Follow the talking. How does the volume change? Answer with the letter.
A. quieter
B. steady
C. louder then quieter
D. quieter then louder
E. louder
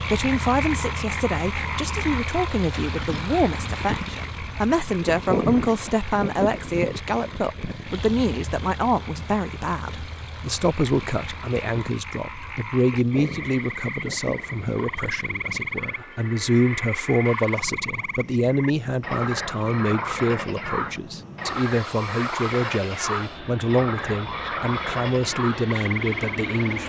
B.